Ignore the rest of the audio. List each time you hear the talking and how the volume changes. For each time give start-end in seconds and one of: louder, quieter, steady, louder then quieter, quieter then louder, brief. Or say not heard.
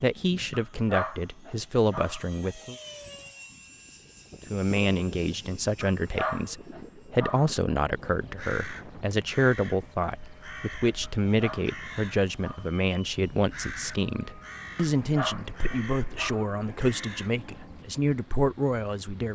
0.0-2.8 brief
4.5-19.3 steady.